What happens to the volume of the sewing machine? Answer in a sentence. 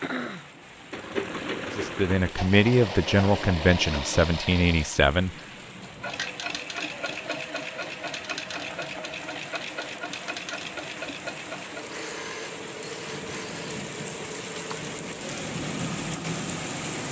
The loudness of the sewing machine goes down.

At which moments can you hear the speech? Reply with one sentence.
You can hear the speech from 1.7 to 5.3 s.